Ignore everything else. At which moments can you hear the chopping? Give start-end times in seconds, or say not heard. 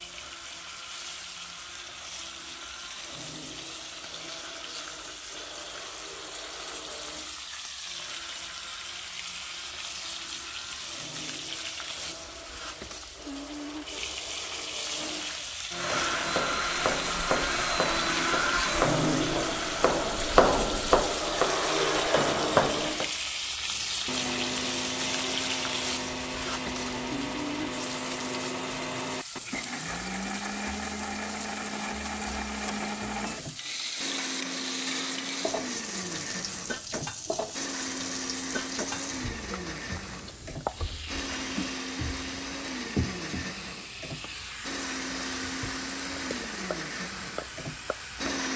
15.8-23.1.